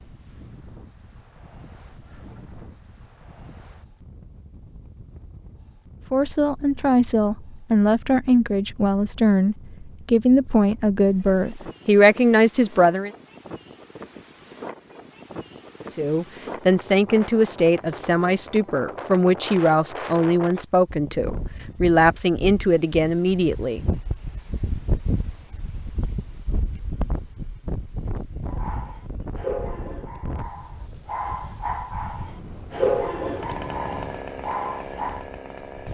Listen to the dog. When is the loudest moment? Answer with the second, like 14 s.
33 s.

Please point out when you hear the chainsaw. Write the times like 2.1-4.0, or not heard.
33.2-35.9.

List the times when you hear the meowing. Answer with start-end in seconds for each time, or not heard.
2.0-2.9.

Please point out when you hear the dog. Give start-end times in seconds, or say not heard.
28.5-35.2.